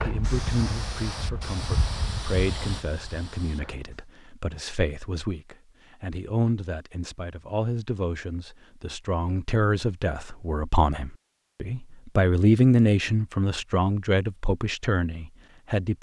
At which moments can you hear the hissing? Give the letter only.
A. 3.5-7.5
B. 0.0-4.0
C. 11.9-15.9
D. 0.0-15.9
B.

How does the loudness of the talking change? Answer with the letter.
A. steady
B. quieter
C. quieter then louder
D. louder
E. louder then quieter
D.